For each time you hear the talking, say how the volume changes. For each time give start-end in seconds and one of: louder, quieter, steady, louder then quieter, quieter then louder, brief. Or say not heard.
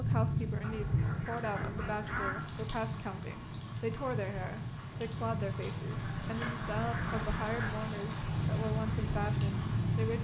0.0-10.1 steady.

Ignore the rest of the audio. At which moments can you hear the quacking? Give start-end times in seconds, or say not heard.
0.6-2.5, 6.0-7.7.